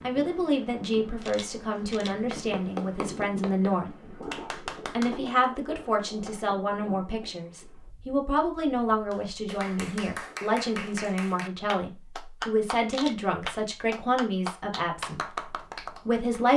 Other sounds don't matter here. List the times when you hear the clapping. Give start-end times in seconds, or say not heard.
2.3-6.5, 9.1-16.5.